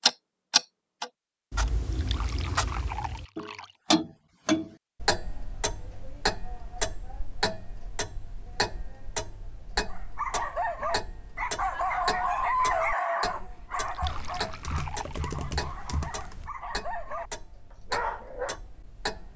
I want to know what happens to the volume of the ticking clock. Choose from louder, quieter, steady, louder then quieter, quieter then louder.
quieter.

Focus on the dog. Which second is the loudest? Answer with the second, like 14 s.
13 s.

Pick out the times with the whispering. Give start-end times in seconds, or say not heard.
not heard.